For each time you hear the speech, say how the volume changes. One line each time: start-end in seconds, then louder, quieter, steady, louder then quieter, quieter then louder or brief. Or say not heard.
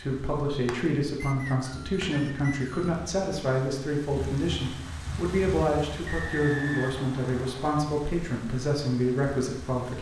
0.0-9.9 steady.